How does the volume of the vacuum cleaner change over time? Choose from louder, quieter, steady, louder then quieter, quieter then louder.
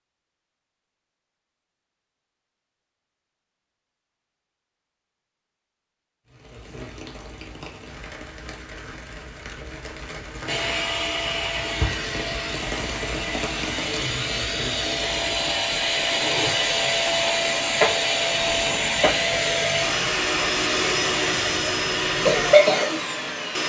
louder.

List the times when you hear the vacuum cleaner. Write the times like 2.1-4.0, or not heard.
10.4-23.6.